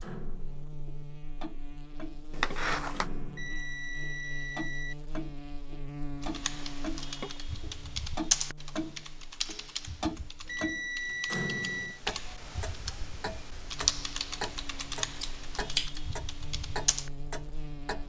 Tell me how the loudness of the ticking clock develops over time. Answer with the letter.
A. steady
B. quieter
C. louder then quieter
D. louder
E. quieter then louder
C.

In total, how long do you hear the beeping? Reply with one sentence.
The beeping can be heard for 3 seconds in total.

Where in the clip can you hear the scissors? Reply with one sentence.
You can hear the scissors from 2.3 to 3.0 s and from 14.9 to 16.0 s.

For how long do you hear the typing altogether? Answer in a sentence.
The typing can be heard for 11 seconds in total.